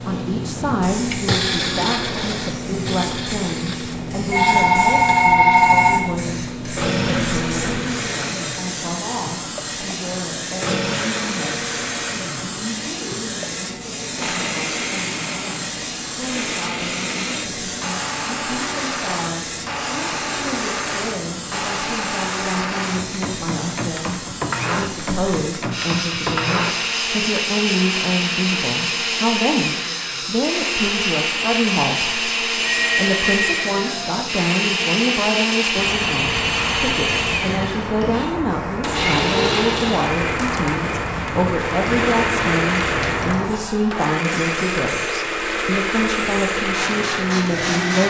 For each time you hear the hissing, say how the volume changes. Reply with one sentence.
You can hear the hissing from 0.0 to 48.0 s, at a steady volume.